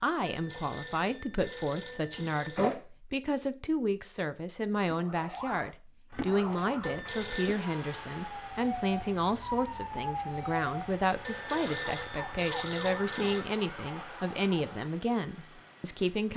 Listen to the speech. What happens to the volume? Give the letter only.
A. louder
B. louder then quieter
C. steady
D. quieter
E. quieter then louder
C.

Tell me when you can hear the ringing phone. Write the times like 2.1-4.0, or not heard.
0.2-2.8, 6.8-7.6, 11.2-13.4.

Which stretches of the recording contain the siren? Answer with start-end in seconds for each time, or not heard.
4.8-14.9.